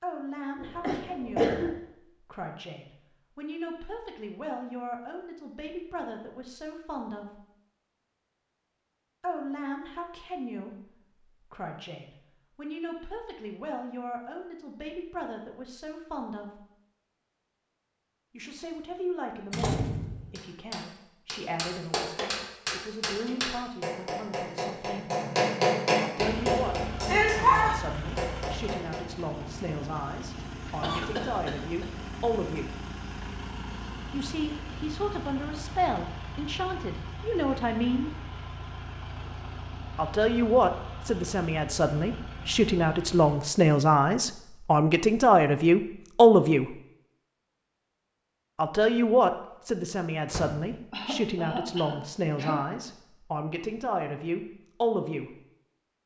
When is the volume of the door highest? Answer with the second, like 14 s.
20 s.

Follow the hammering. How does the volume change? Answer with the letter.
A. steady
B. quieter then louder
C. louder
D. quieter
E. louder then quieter
C.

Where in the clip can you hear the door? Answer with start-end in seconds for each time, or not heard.
19.5-20.4, 50.2-50.8.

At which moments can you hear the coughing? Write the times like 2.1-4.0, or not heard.
0.6-1.7, 30.8-31.9, 50.9-52.6.